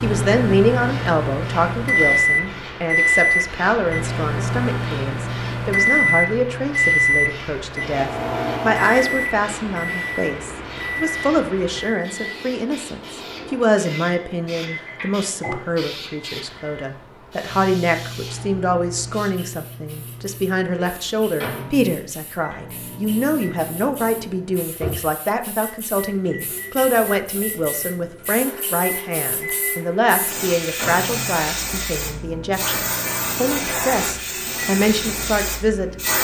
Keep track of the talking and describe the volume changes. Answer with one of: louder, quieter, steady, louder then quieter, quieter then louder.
steady.